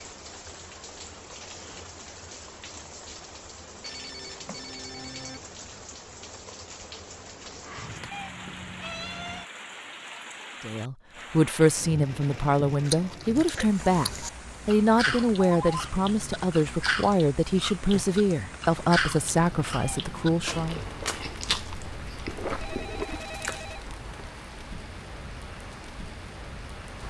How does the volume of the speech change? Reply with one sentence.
The volume of the speech stays about the same.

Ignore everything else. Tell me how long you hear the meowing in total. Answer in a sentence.
You can hear the meowing for 3 seconds altogether.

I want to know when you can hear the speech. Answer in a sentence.
You can hear the speech from 10.6 to 20.9 s.